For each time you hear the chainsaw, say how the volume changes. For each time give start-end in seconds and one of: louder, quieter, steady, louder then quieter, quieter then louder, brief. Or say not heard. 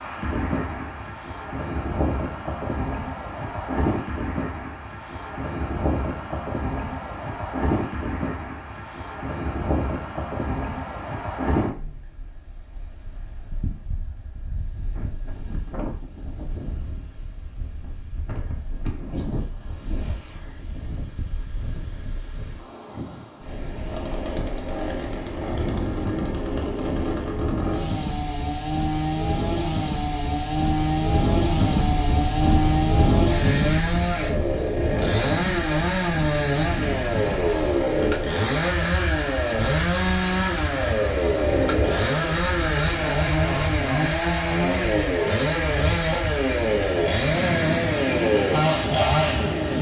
23.9-49.7 louder.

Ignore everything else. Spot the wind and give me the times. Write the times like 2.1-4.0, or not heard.
0.0-49.5.